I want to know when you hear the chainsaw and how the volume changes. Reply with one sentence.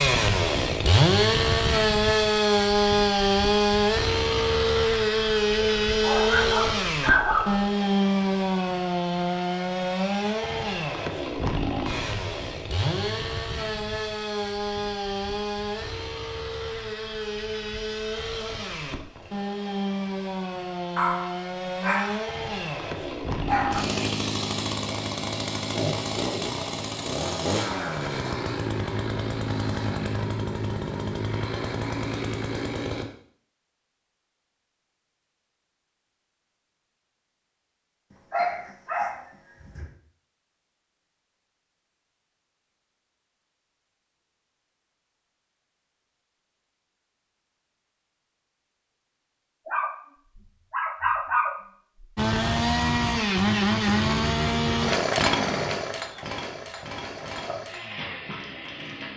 You can hear the chainsaw from 0.0 to 33.0 s, getting quieter; and from 52.1 to 59.1 s, getting quieter.